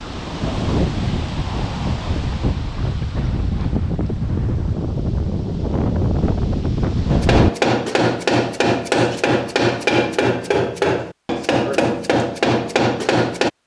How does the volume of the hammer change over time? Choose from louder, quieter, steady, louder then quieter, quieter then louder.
steady.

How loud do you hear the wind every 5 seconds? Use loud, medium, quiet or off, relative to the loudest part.
loud, loud, off.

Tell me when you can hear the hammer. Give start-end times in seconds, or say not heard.
7.1-13.5.